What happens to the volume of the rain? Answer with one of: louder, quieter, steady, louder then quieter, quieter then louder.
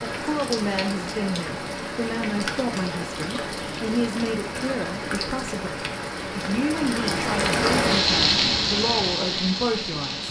louder.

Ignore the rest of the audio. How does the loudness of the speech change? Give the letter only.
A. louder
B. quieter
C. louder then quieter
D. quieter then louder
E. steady
E.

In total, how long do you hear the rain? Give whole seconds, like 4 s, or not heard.
10 s.